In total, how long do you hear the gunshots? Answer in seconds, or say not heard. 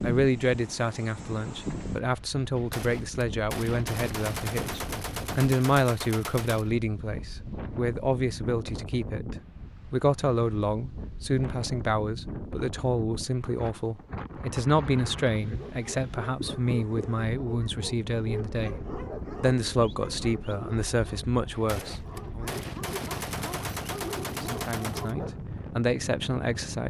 8 s.